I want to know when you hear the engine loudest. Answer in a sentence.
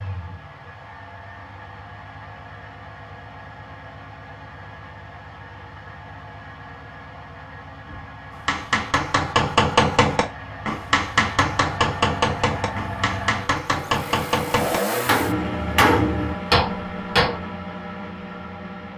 The volume of the engine peaks at 15 seconds.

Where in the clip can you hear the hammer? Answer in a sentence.
You can hear the hammer from 8.3 to 17.4 s.